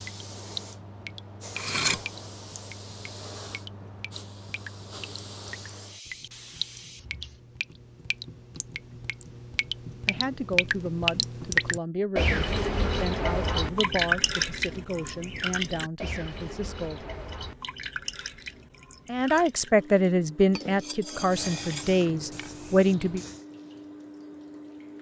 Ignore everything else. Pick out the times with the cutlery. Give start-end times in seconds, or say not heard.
1.6-2.0, 20.5-21.9.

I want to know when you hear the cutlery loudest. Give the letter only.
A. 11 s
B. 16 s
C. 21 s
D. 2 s
D.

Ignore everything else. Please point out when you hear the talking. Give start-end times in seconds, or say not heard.
10.1-17.1, 19.1-23.2.